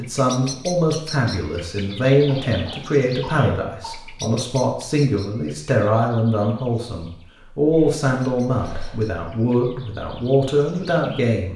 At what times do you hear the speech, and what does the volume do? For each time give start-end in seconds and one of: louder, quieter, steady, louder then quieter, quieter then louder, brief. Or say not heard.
0.0-11.5 steady.